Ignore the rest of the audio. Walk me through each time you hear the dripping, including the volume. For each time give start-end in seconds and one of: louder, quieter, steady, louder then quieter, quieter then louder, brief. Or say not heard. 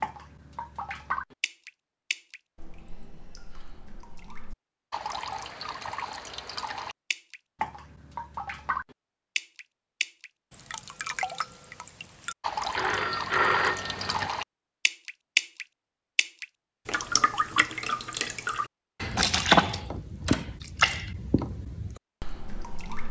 0.0-23.0 louder.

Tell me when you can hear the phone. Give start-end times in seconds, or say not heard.
12.8-14.3.